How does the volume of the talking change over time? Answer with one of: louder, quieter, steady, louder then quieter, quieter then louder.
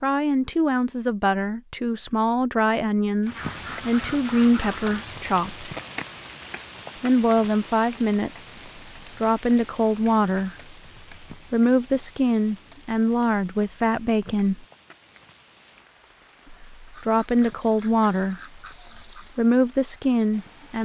steady.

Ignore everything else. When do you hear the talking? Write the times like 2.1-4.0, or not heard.
0.0-5.7, 7.0-14.6, 16.5-20.8.